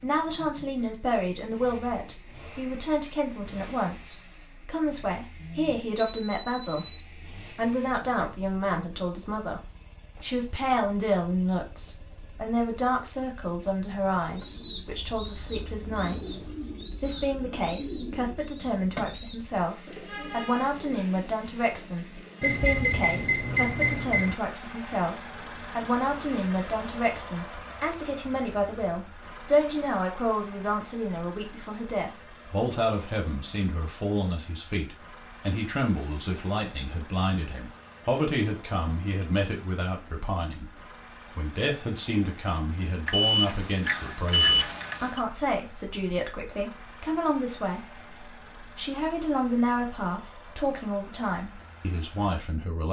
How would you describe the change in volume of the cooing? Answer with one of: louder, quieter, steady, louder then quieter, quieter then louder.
quieter.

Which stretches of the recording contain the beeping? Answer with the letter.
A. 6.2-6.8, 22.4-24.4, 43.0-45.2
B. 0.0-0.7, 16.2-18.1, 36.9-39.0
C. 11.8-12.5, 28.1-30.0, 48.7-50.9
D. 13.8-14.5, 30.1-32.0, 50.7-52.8
A.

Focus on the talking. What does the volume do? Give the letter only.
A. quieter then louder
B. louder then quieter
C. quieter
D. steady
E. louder
D.